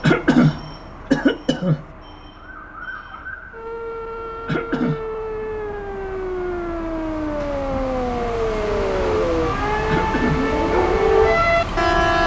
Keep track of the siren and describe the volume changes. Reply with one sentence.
The loudness of the siren goes up.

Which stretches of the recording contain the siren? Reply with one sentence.
The siren can be heard from 2.4 to 12.2 s.